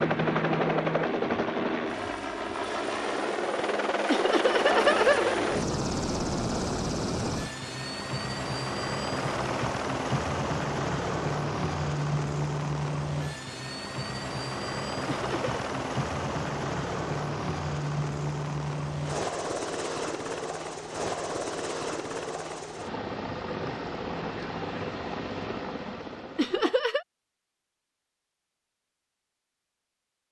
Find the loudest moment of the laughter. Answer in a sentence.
The loudest moment of the laughter is at 5 seconds.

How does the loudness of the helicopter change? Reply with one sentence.
The volume of the helicopter goes down.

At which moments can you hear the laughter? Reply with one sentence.
The laughter can be heard from 4.0 to 5.8 s, from 15.1 to 15.6 s and from 26.4 to 27.1 s.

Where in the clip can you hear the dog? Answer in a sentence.
You can't hear the dog here.